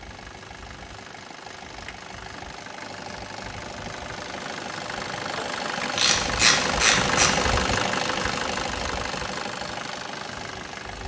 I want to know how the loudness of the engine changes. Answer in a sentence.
The volume of the engine goes up, then down.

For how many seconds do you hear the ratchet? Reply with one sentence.
The ratchet can be heard for 2 seconds in total.